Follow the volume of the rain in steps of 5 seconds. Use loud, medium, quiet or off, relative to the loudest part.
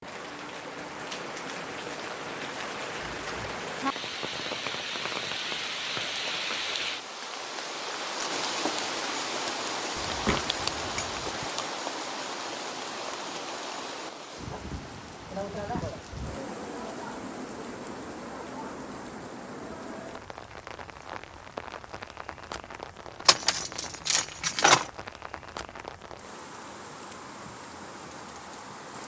loud, loud, loud, medium, medium, medium.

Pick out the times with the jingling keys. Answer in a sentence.
You can hear the jingling keys from 3.0 to 3.6 s, from 9.9 to 11.4 s and from 23.2 to 24.9 s.